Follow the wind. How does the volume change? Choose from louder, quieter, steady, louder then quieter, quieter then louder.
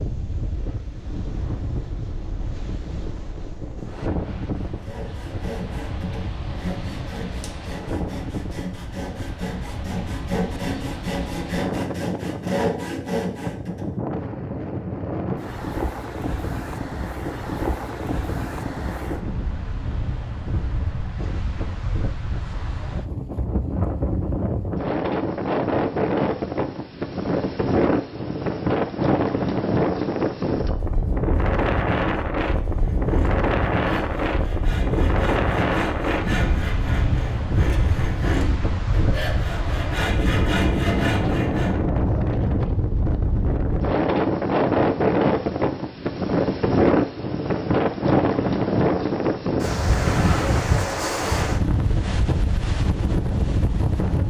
louder.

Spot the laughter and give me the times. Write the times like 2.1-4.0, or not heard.
not heard.